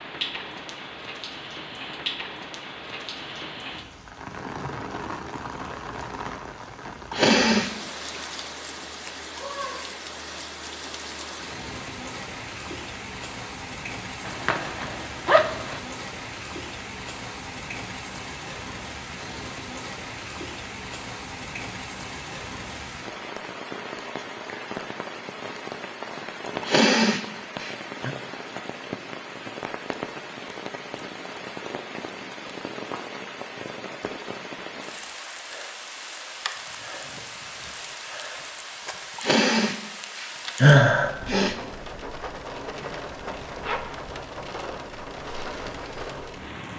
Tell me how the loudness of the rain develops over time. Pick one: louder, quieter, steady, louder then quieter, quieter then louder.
steady.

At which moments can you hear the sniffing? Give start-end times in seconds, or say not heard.
7.1-7.7, 26.6-28.1, 39.1-41.5.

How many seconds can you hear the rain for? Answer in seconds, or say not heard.
47 s.